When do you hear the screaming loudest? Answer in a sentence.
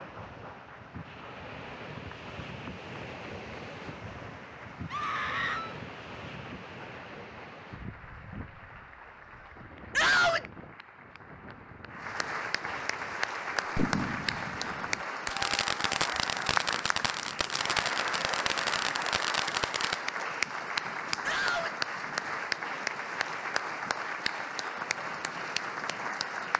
The loudest moment of the screaming is at 10 seconds.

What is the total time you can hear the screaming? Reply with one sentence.
You can hear the screaming for 2 seconds altogether.